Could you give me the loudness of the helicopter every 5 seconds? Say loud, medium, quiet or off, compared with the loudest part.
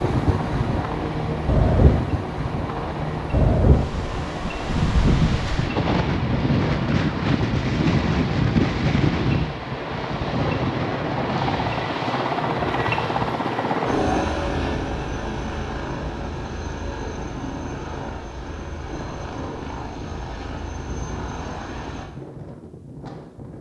medium, medium, loud, medium, medium.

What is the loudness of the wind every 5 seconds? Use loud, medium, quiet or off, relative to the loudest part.
loud, loud, medium, quiet, quiet.